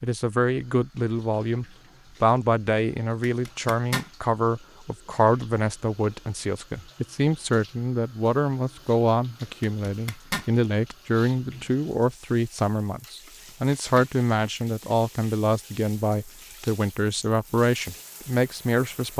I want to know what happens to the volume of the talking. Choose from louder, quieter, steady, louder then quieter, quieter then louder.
steady.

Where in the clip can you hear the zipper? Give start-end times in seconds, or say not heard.
3.2-4.1, 9.6-10.5, 13.2-14.1.